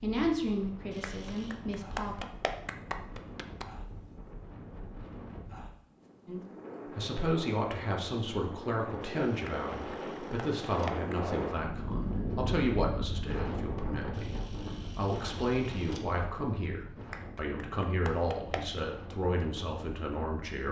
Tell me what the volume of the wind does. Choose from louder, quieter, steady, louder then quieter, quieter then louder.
louder then quieter.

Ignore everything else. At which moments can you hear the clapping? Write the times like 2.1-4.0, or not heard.
1.0-3.6, 9.4-11.2, 17.1-18.8.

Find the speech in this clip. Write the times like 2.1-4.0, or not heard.
0.0-2.2, 6.2-20.6.